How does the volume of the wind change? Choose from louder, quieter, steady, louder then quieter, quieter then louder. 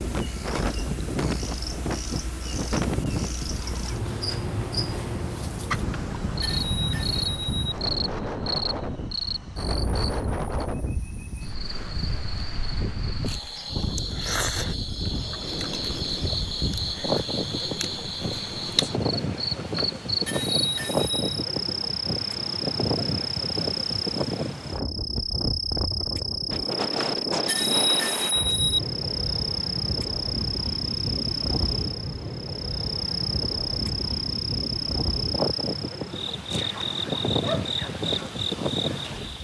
steady.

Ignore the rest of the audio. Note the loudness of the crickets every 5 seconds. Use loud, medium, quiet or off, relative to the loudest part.
medium, loud, medium, loud, loud, loud, loud, loud.